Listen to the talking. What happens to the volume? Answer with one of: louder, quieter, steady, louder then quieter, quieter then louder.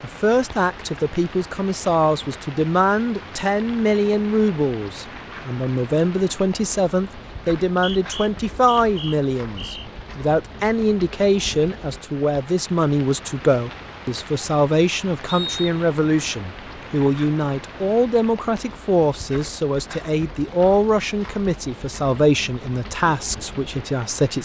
steady.